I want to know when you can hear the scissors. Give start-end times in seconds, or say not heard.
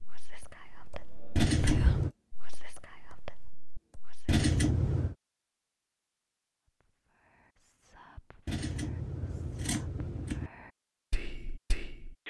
1.4-2.1, 4.2-5.2, 8.4-10.5.